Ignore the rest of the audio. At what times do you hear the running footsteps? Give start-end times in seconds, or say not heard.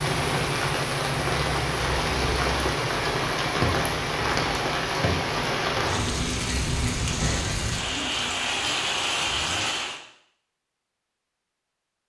not heard.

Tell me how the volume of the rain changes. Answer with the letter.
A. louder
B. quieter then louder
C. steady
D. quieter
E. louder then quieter
C.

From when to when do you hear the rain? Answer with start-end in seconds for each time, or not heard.
0.0-10.0.